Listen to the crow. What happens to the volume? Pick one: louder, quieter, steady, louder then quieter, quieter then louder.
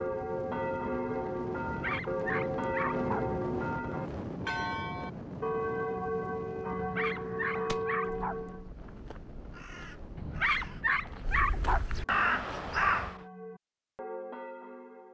louder.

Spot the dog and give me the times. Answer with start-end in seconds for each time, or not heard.
1.6-3.2, 6.7-8.3, 10.2-11.8.